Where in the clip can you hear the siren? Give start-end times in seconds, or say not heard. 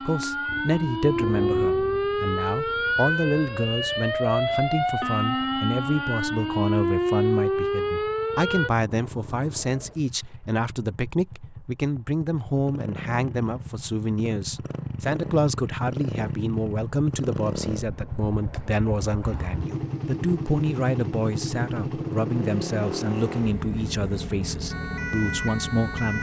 0.0-8.7, 24.7-26.1.